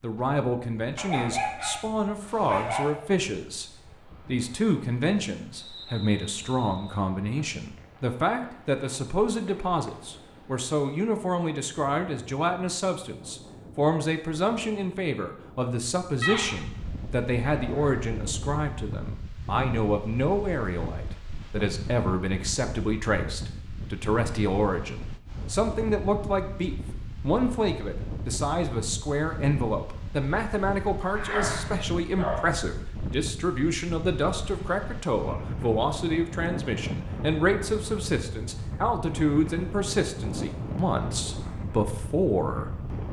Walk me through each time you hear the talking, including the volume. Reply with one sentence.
The talking can be heard from 0.0 to 43.0 s, at a steady volume.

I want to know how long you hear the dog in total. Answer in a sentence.
You can hear the dog for 4 seconds altogether.